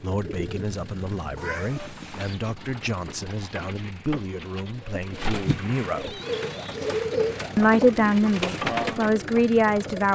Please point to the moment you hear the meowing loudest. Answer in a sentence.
The loudest moment of the meowing is at 2 seconds.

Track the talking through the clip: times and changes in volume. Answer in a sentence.
The talking can be heard from 0.0 to 6.2 s, at a steady volume; and briefly from 7.5 to 10.0 s.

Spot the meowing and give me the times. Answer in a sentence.
You can hear the meowing from 1.4 to 2.4 s and from 6.0 to 6.8 s.